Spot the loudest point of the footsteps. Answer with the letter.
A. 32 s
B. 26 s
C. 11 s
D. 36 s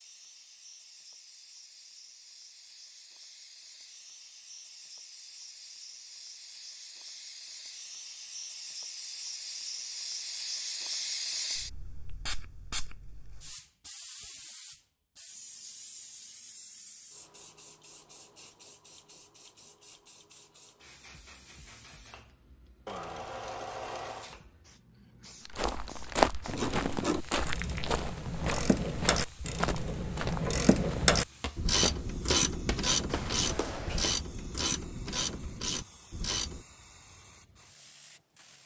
B.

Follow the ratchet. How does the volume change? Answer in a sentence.
The loudness of the ratchet goes up, then down.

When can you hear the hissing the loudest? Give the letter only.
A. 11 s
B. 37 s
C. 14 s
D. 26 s
A.